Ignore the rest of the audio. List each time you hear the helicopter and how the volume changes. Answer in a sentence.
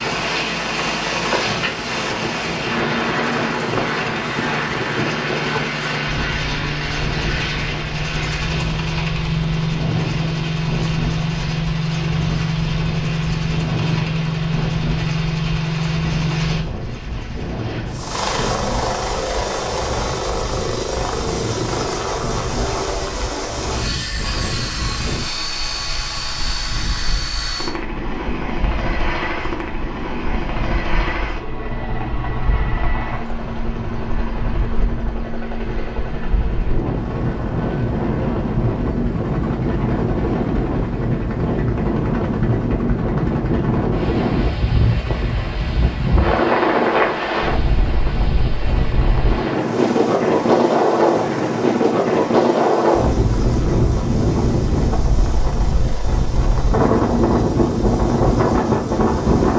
You can hear the helicopter from 0.0 to 59.5 s, getting quieter.